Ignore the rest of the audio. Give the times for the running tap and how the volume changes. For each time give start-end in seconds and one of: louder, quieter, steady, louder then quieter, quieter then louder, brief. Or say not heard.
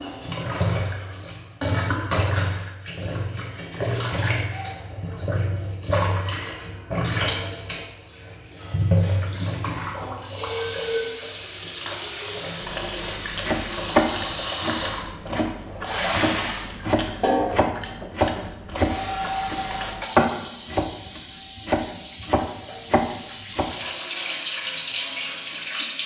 0.0-26.0 steady.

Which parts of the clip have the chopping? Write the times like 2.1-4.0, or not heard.
13.4-23.8.